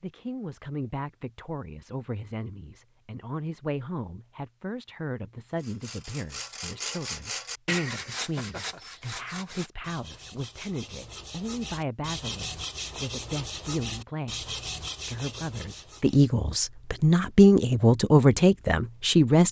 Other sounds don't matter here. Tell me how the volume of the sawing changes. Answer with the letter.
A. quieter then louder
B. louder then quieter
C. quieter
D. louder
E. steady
A.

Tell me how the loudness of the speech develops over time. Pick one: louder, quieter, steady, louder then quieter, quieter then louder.
louder.